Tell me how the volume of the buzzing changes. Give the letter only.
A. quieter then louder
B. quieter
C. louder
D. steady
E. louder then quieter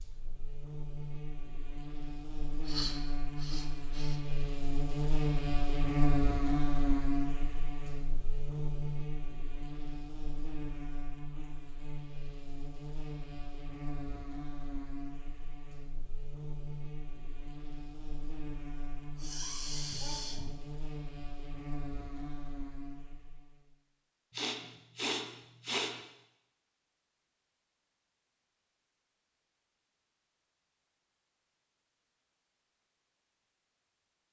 E.